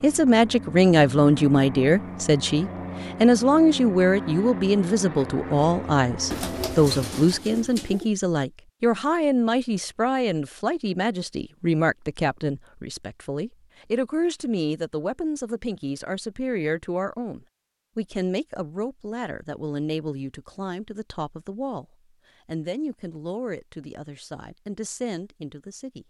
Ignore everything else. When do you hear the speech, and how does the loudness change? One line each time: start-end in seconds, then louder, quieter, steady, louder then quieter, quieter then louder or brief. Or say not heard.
0.0-26.0 quieter.